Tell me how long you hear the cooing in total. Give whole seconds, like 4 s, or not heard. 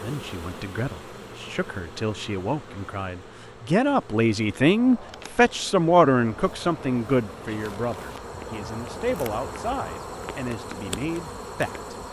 not heard.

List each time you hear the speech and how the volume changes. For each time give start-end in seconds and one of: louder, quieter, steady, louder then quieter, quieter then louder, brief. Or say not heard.
0.0-11.8 louder then quieter.